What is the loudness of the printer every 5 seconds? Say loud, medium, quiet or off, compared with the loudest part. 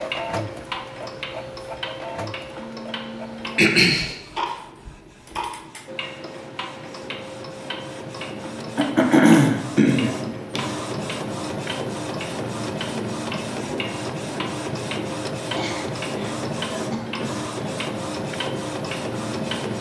medium, medium, loud, loud.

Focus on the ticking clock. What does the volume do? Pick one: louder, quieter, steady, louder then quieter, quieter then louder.
steady.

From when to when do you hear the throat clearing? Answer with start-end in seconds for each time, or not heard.
3.5-4.2, 8.8-10.6, 15.5-17.8.